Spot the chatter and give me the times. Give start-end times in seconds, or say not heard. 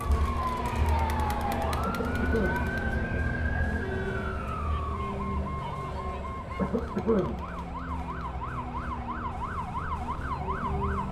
0.0-9.4.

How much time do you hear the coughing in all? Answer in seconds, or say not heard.
2 s.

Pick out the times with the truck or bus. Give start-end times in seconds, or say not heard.
0.0-11.0.